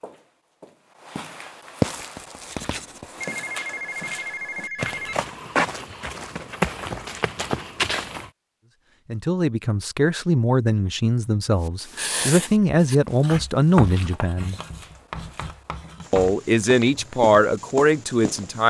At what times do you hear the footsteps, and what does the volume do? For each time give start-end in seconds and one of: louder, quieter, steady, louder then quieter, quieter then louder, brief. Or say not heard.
0.0-8.3 quieter then louder
12.9-18.6 quieter then louder.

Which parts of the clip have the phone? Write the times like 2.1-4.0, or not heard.
2.7-5.2.